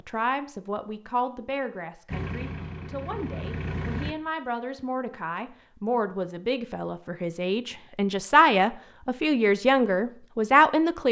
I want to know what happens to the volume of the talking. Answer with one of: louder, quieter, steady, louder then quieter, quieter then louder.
louder.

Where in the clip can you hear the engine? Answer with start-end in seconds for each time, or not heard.
2.0-4.2.